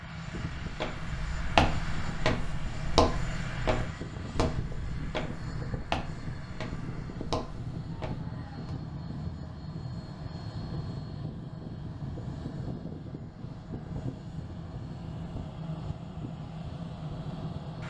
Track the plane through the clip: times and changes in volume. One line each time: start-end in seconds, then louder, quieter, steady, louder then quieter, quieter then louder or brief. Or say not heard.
0.0-17.8 steady.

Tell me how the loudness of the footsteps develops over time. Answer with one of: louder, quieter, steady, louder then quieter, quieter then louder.
quieter.